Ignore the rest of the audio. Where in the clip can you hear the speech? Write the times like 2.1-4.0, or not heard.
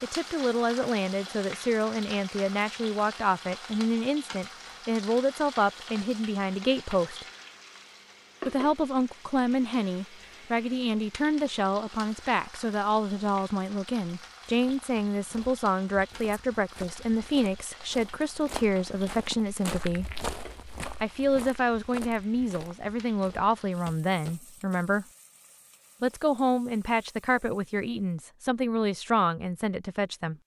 0.0-7.2, 8.4-20.2, 21.0-25.1, 26.0-30.4.